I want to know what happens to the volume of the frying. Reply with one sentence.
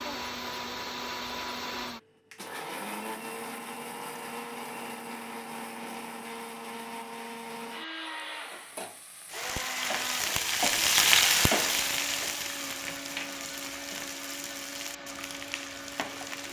The loudness of the frying goes up, then down.